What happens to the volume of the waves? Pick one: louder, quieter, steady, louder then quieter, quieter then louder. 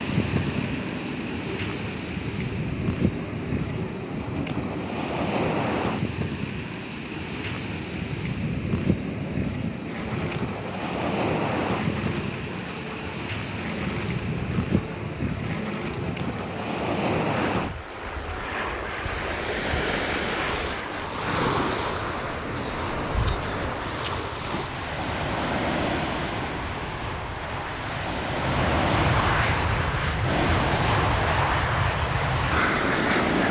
steady.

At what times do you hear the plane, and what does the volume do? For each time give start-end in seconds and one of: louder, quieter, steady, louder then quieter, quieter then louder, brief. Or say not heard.
0.0-33.4 louder.